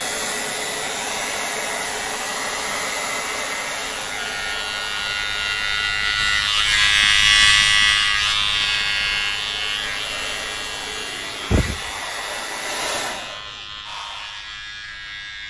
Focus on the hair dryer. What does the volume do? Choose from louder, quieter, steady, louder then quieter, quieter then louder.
quieter then louder.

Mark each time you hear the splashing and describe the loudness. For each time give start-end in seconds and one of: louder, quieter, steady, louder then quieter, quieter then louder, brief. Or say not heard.
not heard.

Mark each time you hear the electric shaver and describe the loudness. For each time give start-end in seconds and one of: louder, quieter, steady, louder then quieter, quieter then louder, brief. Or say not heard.
0.0-15.4 louder then quieter.